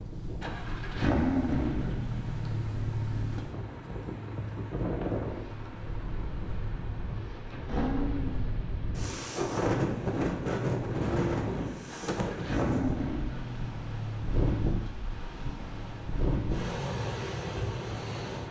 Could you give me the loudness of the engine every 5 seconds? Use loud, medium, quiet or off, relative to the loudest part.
loud, medium, loud, medium.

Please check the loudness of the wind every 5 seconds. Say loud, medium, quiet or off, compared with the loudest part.
medium, loud, loud, loud.